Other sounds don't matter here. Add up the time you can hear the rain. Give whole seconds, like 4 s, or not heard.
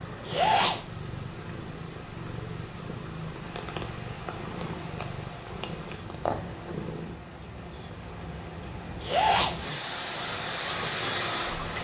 8 s.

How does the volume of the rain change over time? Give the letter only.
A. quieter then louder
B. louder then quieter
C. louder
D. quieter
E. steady
C.